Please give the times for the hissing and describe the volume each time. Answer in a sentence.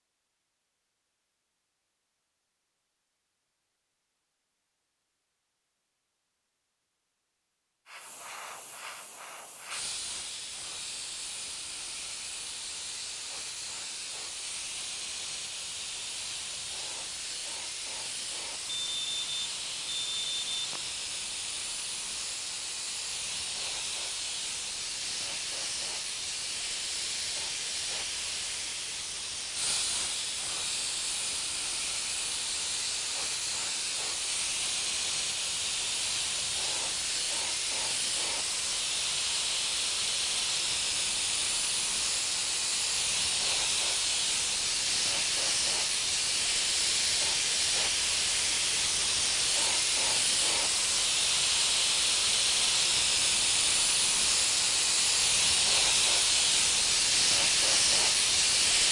You can hear the hissing from 7.8 to 58.8 s, getting louder.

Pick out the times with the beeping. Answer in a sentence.
You can hear the beeping from 18.6 to 20.8 s.